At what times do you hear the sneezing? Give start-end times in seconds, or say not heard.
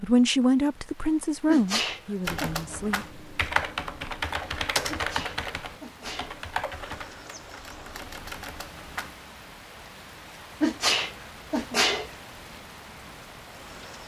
1.4-2.5, 4.9-6.3, 10.6-12.1.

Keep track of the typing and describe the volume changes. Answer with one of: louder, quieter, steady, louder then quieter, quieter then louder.
quieter.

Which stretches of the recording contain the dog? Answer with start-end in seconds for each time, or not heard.
not heard.